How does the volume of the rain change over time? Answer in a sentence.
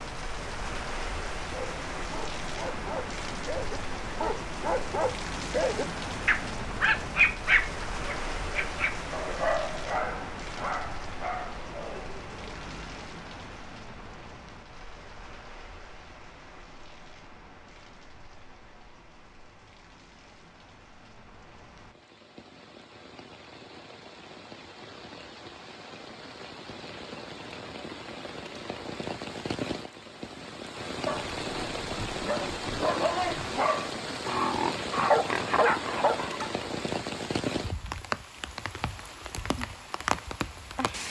The loudness of the rain goes down, then up.